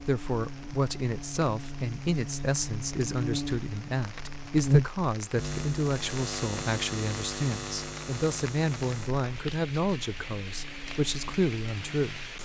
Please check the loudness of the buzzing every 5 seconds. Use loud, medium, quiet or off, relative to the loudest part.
loud, loud, quiet.